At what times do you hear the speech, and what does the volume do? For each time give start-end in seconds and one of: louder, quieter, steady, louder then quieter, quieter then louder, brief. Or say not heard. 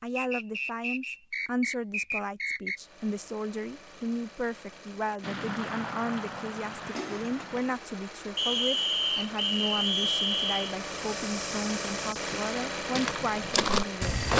0.0-14.2 steady.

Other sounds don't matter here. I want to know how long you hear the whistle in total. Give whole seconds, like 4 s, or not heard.
5 s.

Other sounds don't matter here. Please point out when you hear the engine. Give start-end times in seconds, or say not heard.
2.7-14.3.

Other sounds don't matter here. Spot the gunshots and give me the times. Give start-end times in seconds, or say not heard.
5.2-7.8.